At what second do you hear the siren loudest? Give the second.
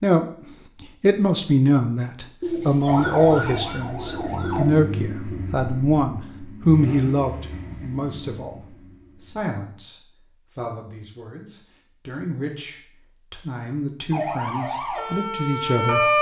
16 s.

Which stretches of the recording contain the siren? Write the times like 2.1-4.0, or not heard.
2.9-4.7, 14.1-16.1.